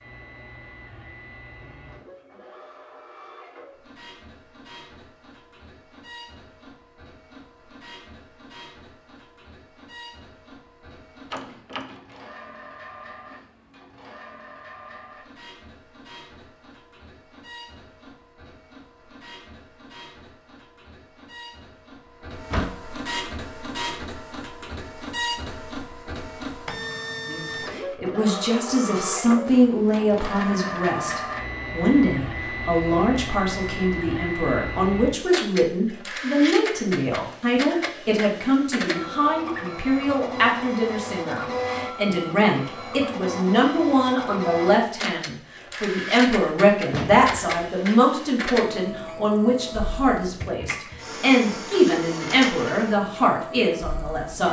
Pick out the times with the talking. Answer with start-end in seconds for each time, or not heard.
27.2-54.4.